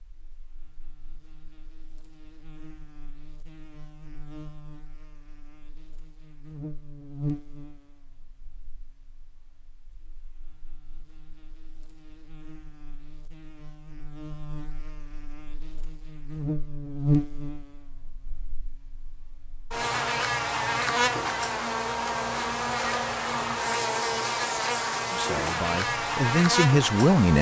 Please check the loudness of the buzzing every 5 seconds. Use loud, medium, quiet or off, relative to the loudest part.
quiet, quiet, quiet, medium, loud, loud.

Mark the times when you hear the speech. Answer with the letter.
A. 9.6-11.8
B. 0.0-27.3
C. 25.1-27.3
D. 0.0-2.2
C.